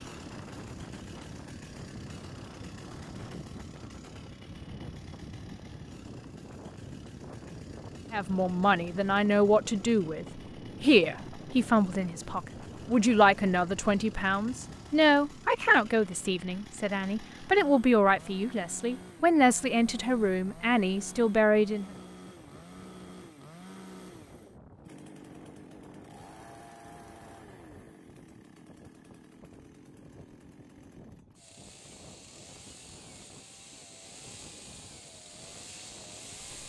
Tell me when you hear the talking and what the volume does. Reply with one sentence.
The talking can be heard from 8.1 to 21.9 s, at a steady volume.